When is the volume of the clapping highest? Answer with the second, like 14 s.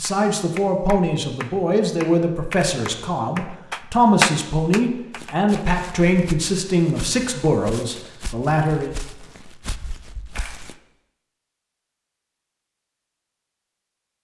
4 s.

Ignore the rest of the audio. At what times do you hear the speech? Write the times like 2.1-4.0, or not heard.
0.0-8.9.